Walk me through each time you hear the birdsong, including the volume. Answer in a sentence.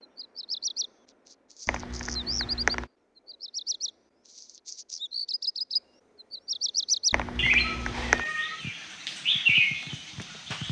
The birdsong can be heard from 0.0 to 10.6 s, getting louder.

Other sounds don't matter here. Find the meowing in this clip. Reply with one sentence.
The meowing can be heard from 7.6 to 8.7 s.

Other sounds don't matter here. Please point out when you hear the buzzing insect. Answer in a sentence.
You can't hear the buzzing insect here.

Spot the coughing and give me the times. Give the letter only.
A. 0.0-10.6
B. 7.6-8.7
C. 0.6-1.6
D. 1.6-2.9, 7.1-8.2
D.